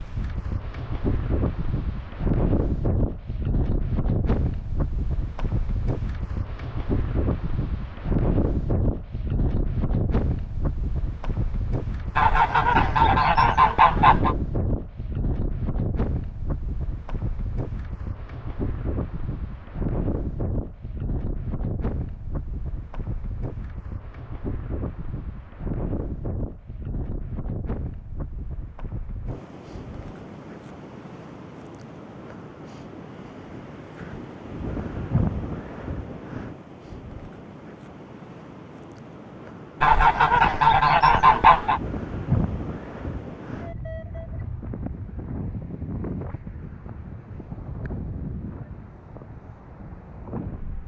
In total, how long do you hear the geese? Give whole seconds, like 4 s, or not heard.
4 s.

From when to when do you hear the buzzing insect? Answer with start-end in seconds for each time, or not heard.
not heard.